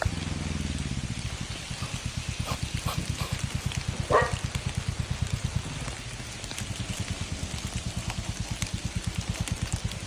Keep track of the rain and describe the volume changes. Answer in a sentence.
The volume of the rain stays about the same.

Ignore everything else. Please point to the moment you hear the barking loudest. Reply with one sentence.
The loudest moment of the barking is at 4 seconds.